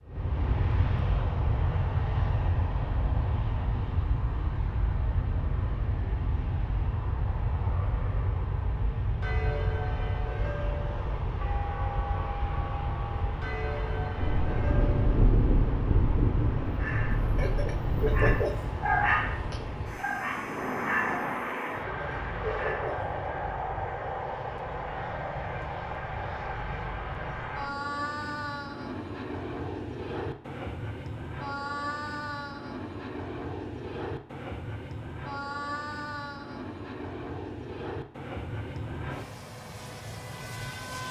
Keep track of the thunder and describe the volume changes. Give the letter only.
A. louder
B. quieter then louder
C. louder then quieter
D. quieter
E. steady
D.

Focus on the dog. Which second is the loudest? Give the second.
19 s.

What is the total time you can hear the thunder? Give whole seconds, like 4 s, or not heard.
4 s.